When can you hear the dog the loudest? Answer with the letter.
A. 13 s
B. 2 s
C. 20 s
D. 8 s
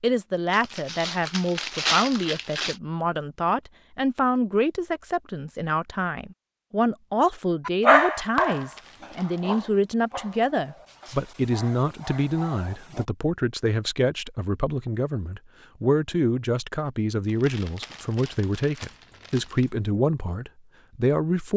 D.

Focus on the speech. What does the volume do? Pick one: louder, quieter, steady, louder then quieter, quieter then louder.
steady.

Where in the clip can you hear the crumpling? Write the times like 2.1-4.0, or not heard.
0.5-2.8, 8.3-9.6, 17.2-19.6.